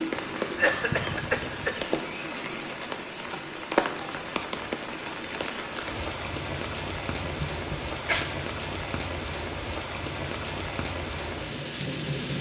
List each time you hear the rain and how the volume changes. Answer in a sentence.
The rain can be heard from 0.0 to 12.3 s, at a steady volume.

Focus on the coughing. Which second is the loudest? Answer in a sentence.
The volume of the coughing peaks at 1 second.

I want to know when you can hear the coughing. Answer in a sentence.
You can hear the coughing from 0.6 to 1.8 s and from 7.2 to 8.3 s.